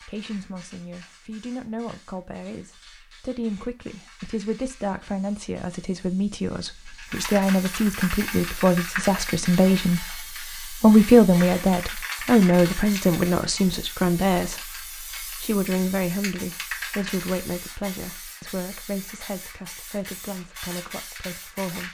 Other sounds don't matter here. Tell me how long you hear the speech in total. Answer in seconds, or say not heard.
22 s.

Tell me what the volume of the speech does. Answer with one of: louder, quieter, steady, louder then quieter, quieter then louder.
louder then quieter.